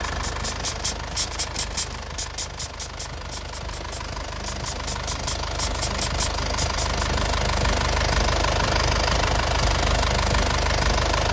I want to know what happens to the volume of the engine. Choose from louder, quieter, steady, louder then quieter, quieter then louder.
louder.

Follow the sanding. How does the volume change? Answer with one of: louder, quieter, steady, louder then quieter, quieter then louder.
quieter then louder.